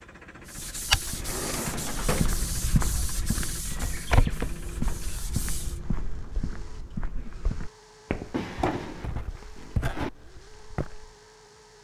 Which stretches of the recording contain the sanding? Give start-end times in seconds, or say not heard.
0.5-5.8.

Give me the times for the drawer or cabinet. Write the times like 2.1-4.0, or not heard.
1.1-2.4, 8.3-10.1.